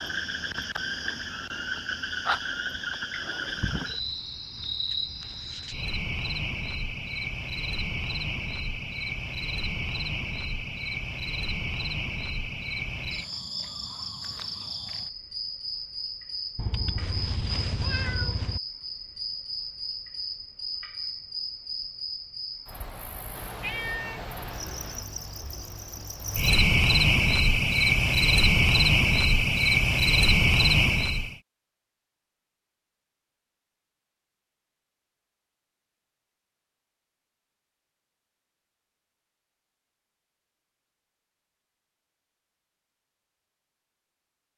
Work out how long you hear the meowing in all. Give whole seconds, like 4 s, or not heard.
4 s.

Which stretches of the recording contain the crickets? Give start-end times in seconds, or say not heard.
0.0-31.4.